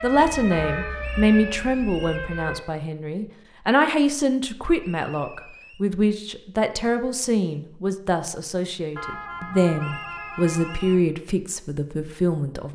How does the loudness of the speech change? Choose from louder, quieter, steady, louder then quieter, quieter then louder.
steady.